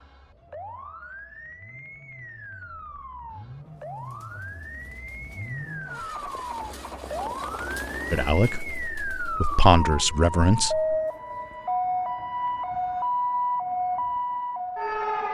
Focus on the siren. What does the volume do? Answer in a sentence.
The loudness of the siren goes up.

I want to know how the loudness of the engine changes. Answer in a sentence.
The volume of the engine goes up.